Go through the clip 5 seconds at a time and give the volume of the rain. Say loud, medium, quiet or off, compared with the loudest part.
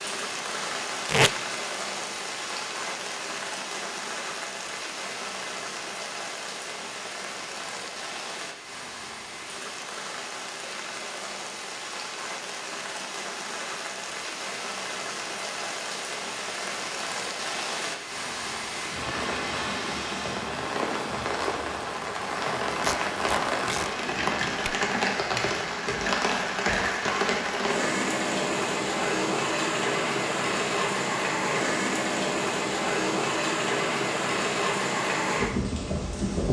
medium, medium, medium, medium, loud, loud, loud, loud.